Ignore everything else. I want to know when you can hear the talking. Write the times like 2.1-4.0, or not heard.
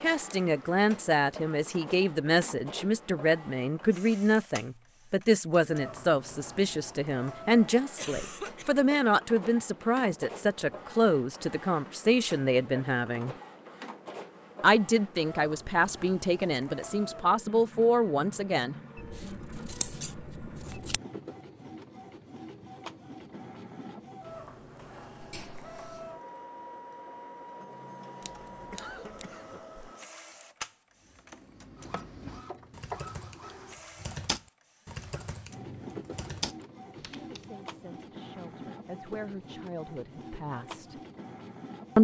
0.0-13.3, 14.6-18.8, 37.3-41.0.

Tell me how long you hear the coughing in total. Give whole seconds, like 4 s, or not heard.
3 s.